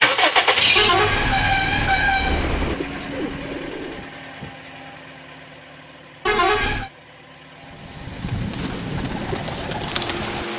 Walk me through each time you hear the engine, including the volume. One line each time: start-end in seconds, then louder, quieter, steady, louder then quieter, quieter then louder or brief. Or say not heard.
0.0-10.5 quieter then louder.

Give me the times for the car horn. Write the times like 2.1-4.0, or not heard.
0.8-2.8, 6.2-6.9.